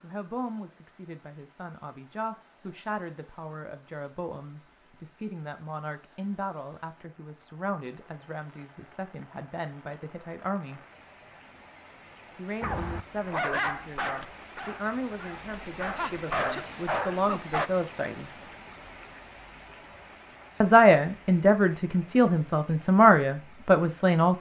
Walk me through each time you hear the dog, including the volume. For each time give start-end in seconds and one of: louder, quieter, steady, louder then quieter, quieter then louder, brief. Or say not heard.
12.6-17.7 quieter then louder.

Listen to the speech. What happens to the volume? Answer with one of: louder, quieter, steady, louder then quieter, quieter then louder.
louder.